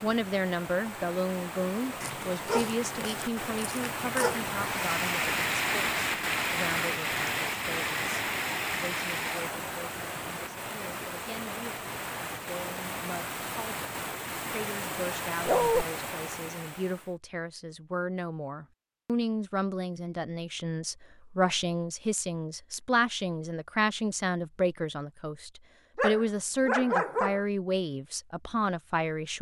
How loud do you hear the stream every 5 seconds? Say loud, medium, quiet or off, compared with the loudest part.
medium, loud, medium, medium, off, off.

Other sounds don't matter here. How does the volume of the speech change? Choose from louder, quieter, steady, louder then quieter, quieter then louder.
quieter then louder.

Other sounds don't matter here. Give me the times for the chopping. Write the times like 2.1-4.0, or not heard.
not heard.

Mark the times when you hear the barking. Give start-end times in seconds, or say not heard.
2.0-4.5, 15.4-15.8, 25.9-27.4.